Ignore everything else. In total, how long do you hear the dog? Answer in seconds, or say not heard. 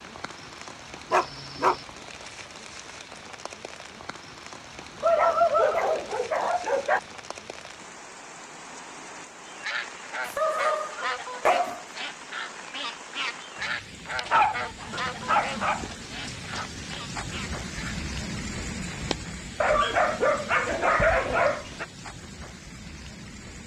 9 s.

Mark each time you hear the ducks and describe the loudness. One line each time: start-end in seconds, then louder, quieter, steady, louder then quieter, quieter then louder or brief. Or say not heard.
9.4-18.1 quieter.